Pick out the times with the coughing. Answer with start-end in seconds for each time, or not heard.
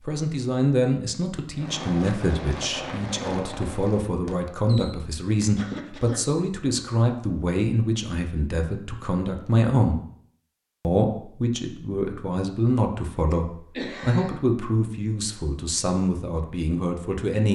5.5-6.2, 13.3-14.4.